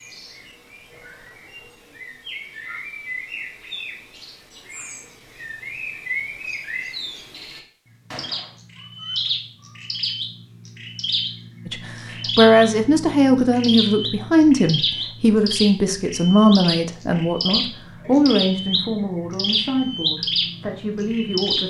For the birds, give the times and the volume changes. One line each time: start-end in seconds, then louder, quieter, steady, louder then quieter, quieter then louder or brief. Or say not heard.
0.0-21.6 louder.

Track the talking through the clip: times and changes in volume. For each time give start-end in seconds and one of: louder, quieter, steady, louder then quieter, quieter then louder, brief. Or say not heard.
11.7-21.6 quieter.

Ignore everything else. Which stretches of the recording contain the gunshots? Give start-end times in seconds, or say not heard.
8.1-8.6.